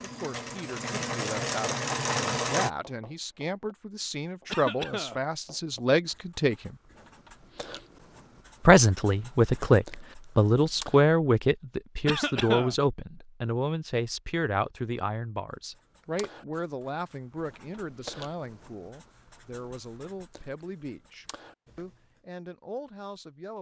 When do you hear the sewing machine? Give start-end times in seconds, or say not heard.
0.0-2.7.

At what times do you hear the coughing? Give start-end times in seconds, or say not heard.
4.5-5.2, 12.1-12.8.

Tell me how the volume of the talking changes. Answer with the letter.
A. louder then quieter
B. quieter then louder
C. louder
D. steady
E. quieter
A.